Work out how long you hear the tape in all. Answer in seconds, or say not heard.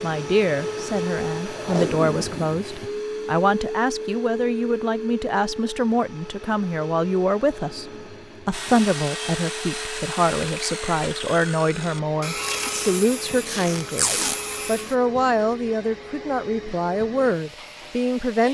3 s.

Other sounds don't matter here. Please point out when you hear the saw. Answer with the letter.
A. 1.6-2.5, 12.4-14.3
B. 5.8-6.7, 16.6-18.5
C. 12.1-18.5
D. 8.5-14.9
D.